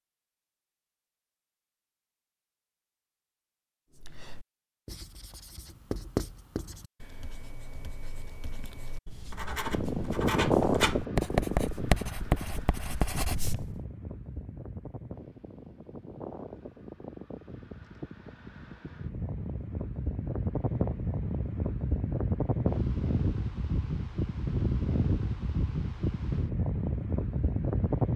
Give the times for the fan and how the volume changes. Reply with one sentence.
The fan can be heard from 9.7 to 28.1 s, getting quieter then louder.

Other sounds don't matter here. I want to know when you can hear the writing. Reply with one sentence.
You can hear the writing from 3.9 to 13.8 s.